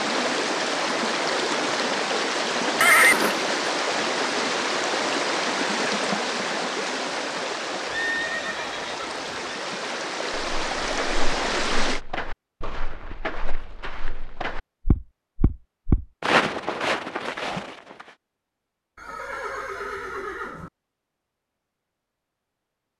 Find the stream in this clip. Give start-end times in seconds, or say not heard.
0.0-12.0.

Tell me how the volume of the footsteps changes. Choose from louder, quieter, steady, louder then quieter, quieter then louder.
louder.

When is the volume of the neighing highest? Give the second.
3 s.